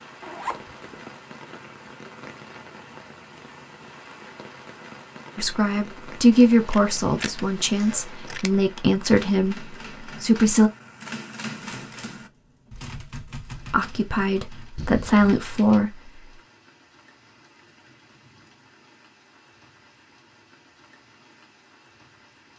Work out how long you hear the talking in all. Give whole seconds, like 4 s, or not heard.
8 s.